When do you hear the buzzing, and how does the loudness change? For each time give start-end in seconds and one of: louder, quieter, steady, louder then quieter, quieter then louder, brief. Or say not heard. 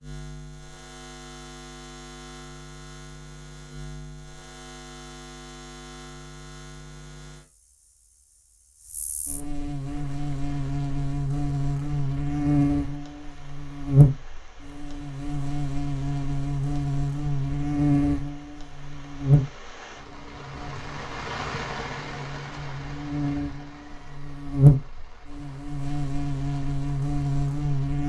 0.0-28.0 louder.